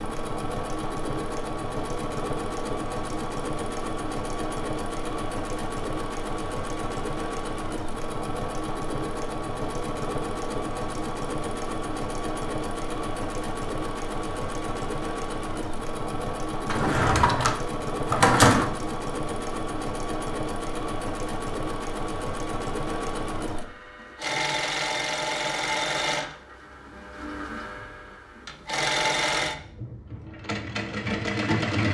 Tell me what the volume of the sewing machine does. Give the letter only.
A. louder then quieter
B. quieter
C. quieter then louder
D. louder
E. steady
E.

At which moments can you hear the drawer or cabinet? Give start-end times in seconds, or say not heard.
16.6-18.6.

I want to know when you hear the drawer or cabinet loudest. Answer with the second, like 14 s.
18 s.